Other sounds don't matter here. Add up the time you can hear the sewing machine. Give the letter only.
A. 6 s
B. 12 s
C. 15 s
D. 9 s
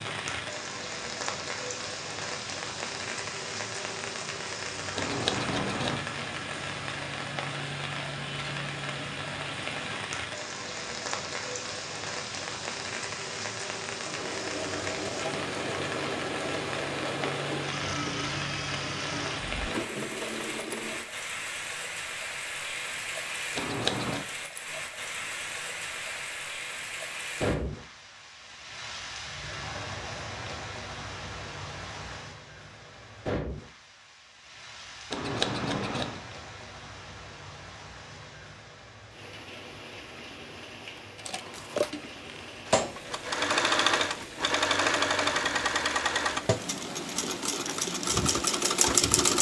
C.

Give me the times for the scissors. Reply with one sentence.
The scissors can be heard from 5.0 to 6.0 s, from 23.6 to 24.2 s and from 35.1 to 36.2 s.